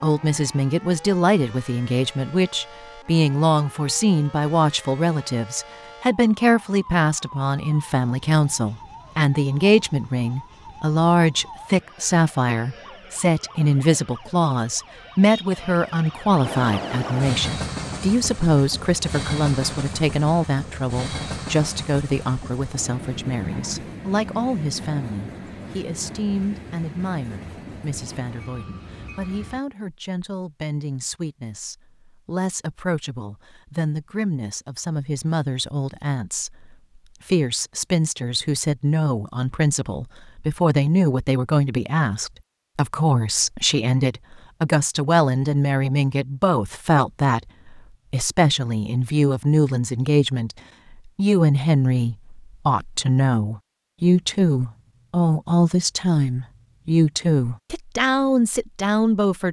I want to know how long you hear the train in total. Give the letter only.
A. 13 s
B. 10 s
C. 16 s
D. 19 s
A.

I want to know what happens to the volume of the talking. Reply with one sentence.
The volume of the talking goes down, then up.